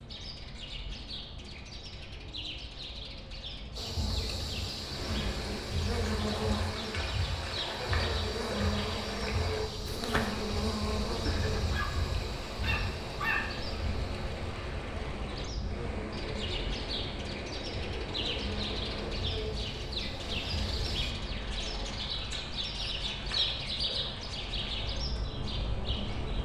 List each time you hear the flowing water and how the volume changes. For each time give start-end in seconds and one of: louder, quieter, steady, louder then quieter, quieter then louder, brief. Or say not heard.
4.7-26.4 quieter.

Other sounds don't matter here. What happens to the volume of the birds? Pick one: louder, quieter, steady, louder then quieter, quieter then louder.
louder.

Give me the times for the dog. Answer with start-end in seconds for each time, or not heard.
11.2-13.6.